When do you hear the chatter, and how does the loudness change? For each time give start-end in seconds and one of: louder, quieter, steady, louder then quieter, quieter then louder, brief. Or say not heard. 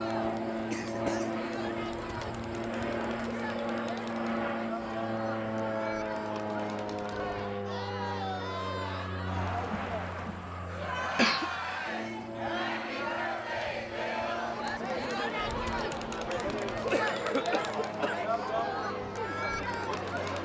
0.0-20.4 louder.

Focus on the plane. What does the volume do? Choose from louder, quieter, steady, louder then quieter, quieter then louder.
quieter.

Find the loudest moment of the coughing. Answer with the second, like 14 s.
11 s.